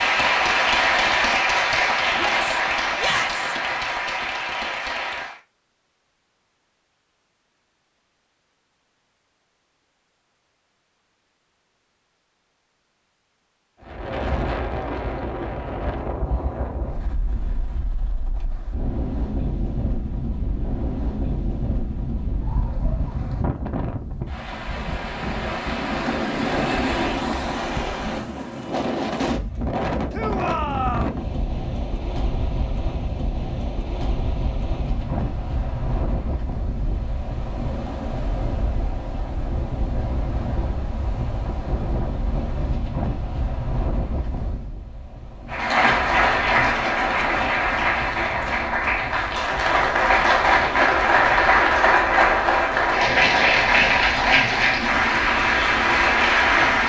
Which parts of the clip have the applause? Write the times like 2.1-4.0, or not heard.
0.0-5.4, 45.5-56.8.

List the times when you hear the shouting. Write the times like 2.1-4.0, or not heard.
2.1-3.5, 30.1-31.1.